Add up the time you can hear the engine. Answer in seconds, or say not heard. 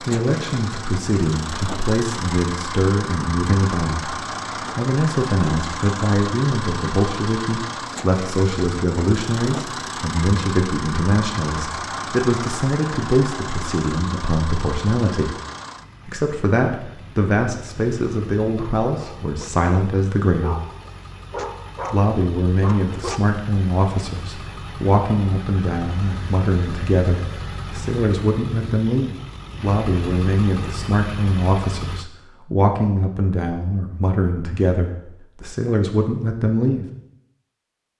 32 s.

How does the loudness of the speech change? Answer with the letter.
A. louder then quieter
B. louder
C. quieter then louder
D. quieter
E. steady
E.